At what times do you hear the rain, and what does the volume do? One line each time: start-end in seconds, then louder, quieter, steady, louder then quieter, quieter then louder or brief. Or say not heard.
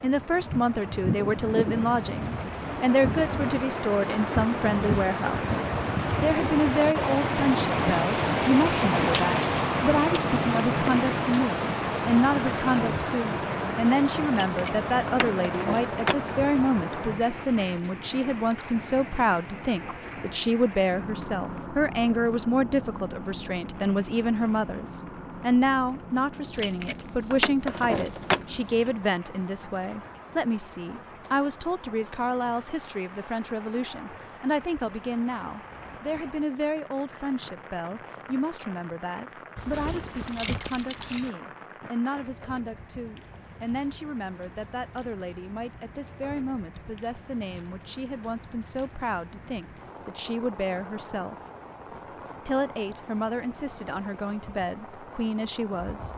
0.0-56.1 quieter.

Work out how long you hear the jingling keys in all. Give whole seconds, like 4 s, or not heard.
6 s.